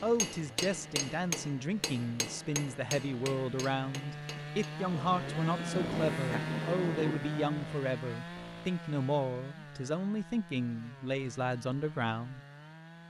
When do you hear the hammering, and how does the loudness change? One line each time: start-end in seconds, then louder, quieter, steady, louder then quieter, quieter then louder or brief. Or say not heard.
0.0-4.8 quieter.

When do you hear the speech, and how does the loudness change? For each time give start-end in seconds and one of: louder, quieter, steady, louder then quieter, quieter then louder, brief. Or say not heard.
0.0-12.4 steady.